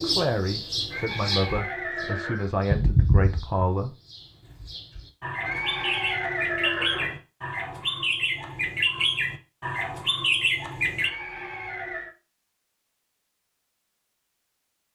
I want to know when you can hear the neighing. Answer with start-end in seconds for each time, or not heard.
0.9-2.5, 5.4-7.2, 10.9-12.2.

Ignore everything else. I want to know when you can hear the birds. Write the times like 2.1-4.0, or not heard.
0.0-11.1.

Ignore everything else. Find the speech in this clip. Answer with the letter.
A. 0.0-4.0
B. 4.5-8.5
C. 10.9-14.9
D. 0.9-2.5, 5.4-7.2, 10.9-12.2
A.